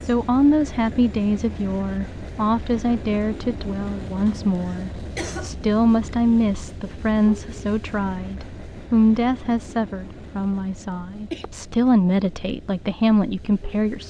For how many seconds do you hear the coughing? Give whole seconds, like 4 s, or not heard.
2 s.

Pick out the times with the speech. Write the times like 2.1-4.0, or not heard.
0.0-14.0.